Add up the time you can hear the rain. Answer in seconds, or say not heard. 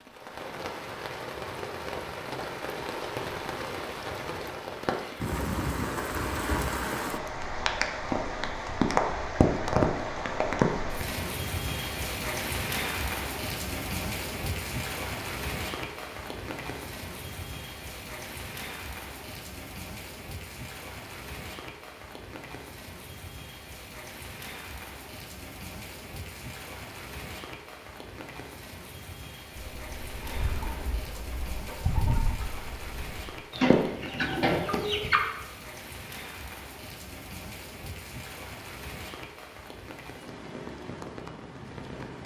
42 s.